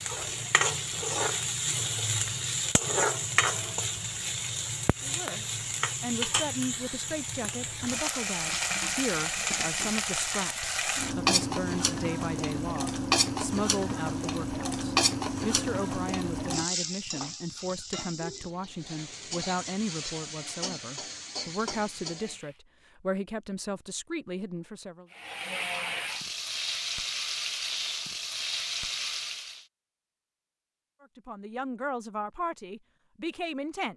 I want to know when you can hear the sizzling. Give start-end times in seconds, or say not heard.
0.0-22.6, 25.1-29.6.